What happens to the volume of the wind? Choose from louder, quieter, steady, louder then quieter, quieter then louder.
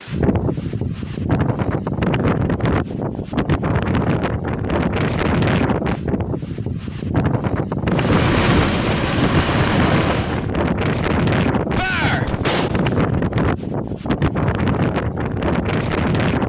steady.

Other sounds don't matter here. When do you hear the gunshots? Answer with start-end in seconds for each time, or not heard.
11.8-13.2.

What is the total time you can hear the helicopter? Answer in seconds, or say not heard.
3 s.